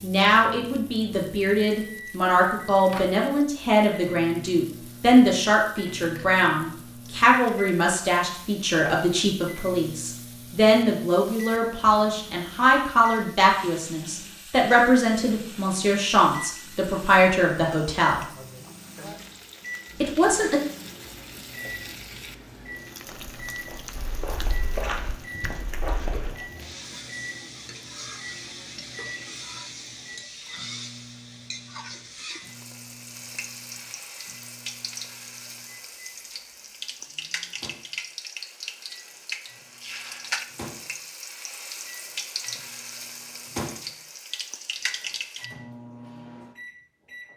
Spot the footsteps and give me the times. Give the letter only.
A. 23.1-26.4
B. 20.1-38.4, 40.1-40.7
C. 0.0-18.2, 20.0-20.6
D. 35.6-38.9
A.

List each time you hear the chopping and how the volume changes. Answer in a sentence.
The chopping can't be heard in this clip.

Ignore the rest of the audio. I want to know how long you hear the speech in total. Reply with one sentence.
You can hear the speech for 19 seconds altogether.